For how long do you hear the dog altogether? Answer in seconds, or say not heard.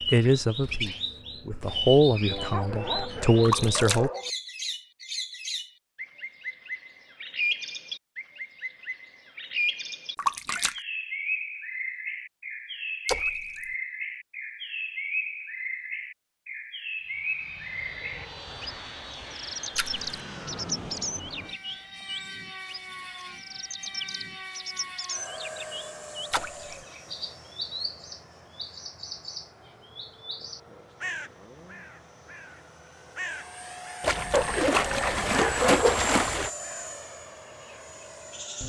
4 s.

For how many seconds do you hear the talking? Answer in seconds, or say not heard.
4 s.